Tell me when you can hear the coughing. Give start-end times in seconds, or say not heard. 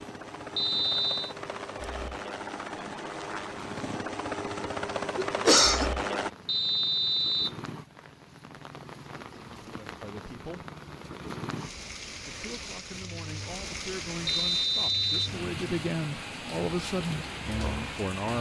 5.2-5.9.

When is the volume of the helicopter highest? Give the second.
6 s.